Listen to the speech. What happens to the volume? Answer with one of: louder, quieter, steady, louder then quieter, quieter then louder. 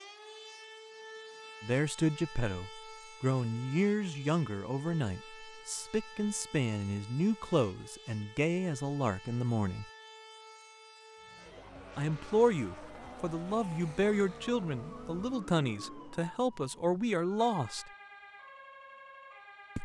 steady.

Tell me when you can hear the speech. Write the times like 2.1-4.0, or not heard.
1.6-9.8, 11.9-17.9.